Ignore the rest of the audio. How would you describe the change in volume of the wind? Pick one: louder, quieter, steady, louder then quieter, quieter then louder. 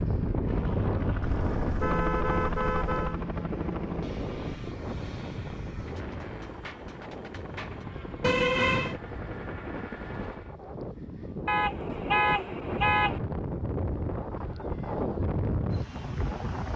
quieter then louder.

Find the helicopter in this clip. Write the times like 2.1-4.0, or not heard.
0.0-10.6.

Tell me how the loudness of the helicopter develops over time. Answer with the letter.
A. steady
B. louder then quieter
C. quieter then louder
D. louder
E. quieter
E.